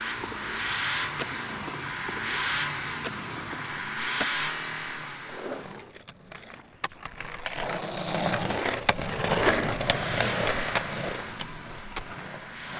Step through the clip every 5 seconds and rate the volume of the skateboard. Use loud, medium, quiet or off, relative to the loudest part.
medium, loud, loud.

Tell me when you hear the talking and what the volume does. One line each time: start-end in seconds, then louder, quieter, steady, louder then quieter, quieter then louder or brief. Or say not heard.
not heard.